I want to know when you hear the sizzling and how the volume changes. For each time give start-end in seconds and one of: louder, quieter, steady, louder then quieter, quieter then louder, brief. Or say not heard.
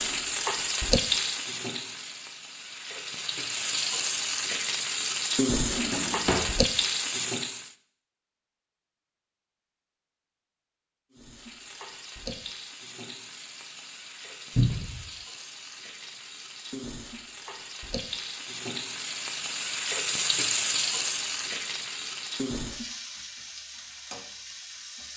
0.0-7.8 quieter then louder
11.1-25.1 louder then quieter.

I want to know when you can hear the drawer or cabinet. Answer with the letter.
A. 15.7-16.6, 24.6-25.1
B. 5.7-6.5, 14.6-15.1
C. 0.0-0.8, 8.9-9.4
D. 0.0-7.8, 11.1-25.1
B.